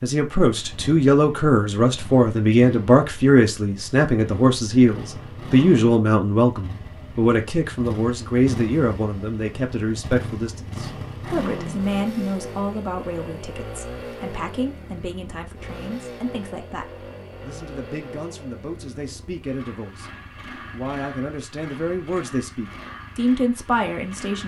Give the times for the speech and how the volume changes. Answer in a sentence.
The speech can be heard from 0.0 to 24.4 s, getting quieter then louder.